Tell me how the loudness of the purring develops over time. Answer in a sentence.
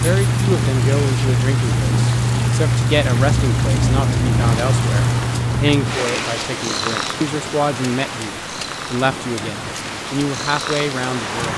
The loudness of the purring goes down.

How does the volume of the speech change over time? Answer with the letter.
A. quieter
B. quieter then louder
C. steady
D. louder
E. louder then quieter
C.